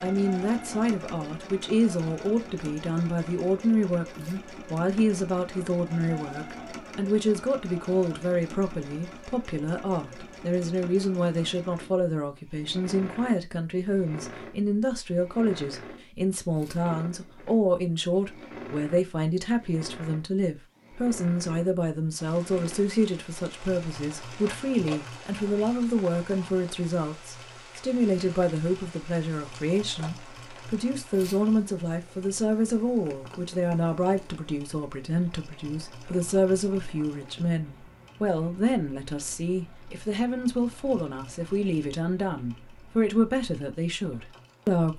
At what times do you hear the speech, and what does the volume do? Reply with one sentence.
The speech can be heard from 0.0 to 44.9 s, at a steady volume.